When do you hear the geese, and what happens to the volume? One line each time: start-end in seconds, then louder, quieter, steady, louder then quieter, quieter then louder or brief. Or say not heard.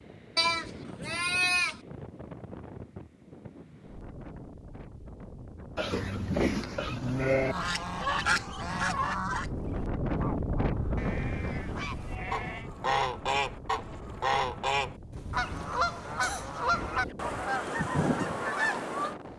7.5-19.1 quieter then louder.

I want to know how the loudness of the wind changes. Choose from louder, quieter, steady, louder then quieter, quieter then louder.
louder then quieter.